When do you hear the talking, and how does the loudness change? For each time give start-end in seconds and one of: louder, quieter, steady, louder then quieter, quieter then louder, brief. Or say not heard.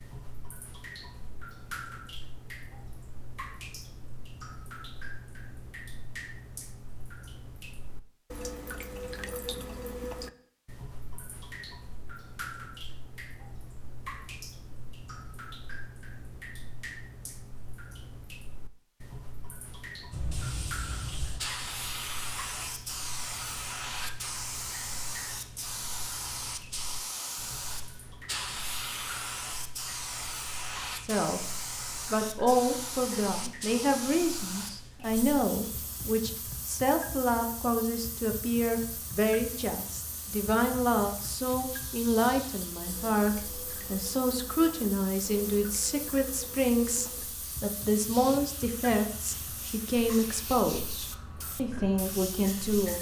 31.0-52.9 steady.